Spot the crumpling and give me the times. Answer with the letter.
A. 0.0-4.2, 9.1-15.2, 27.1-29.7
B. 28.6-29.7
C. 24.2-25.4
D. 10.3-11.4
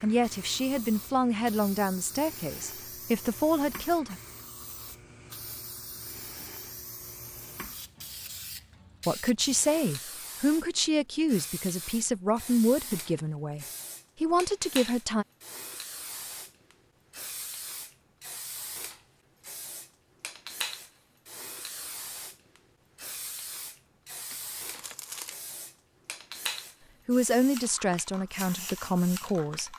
C.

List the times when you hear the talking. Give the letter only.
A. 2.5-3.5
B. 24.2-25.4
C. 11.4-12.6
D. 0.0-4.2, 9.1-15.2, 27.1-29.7
D.